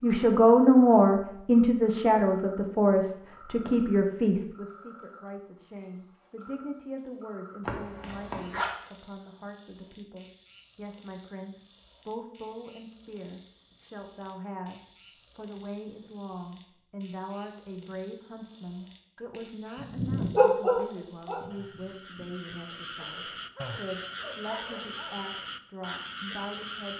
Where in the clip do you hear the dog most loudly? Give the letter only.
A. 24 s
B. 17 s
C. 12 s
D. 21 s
D.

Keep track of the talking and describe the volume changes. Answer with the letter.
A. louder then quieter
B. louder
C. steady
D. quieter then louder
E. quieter
E.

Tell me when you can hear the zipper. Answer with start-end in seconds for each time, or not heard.
7.7-8.7.